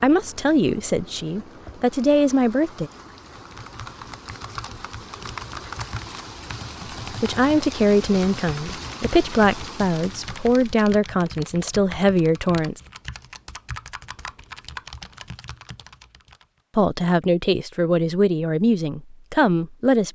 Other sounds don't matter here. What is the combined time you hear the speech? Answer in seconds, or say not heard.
12 s.